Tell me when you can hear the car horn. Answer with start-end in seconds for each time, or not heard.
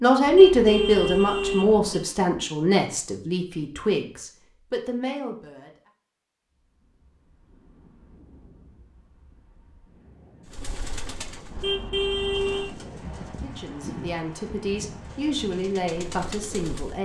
0.2-2.0, 11.5-12.8.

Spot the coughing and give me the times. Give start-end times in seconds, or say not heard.
not heard.